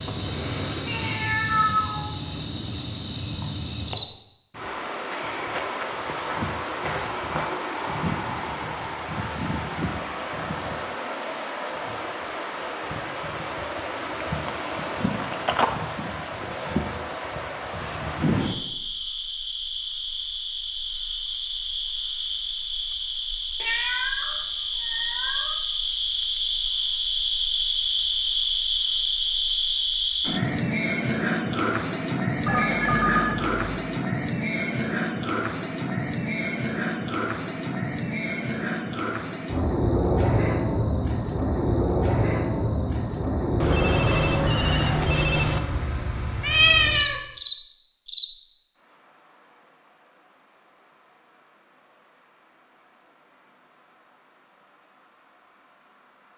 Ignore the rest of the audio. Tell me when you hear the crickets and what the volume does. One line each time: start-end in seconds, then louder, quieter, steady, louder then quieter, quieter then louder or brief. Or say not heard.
0.0-56.3 louder then quieter.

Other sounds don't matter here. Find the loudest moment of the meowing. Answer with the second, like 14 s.
47 s.